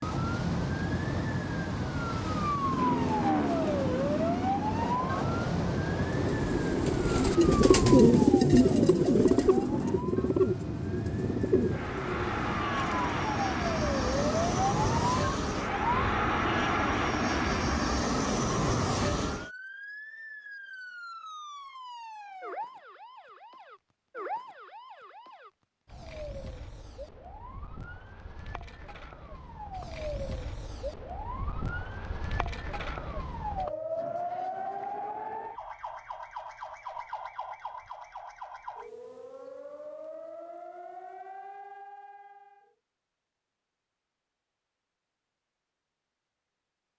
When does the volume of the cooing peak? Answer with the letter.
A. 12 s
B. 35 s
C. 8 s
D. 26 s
C.